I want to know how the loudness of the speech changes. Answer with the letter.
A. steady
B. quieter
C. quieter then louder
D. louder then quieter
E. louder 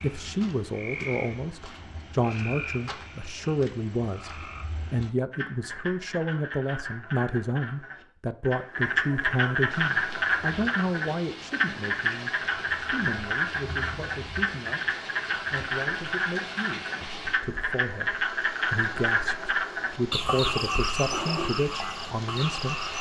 C.